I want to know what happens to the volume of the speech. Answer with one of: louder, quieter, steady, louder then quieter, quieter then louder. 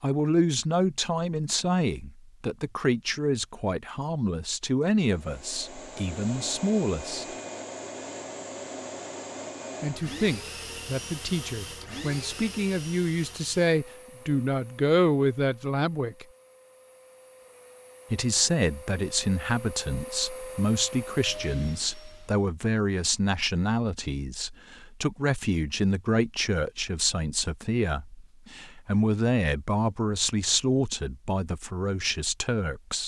steady.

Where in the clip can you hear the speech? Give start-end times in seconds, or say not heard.
0.0-7.2, 9.8-16.2, 18.1-33.0.